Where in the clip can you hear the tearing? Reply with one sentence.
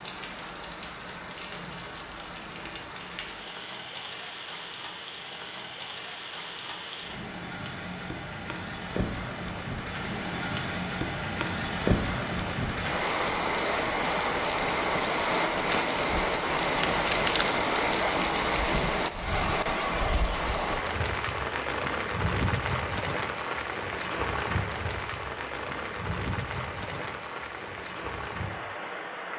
The tearing can be heard from 16.8 to 17.6 s.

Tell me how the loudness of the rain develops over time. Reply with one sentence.
The loudness of the rain goes up, then down.